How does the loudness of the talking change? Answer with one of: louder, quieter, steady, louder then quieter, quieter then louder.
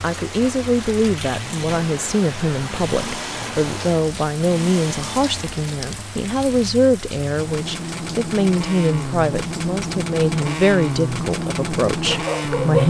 steady.